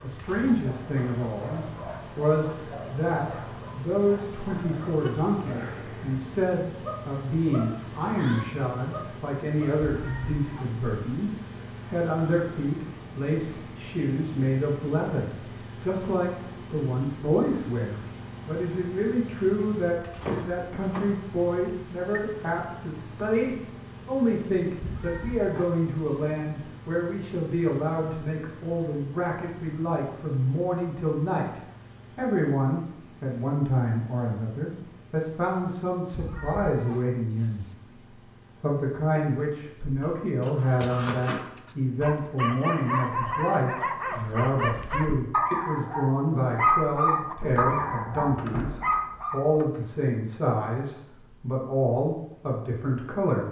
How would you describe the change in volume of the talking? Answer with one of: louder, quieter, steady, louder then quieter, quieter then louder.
steady.